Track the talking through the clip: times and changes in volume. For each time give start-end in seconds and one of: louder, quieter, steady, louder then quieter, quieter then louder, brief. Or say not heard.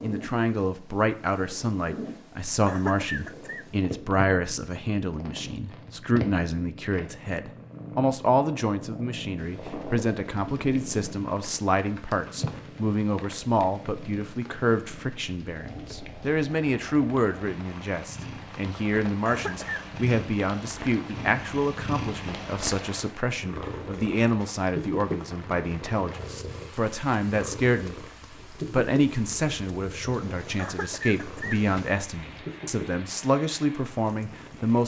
0.0-28.1 steady
28.6-34.8 steady.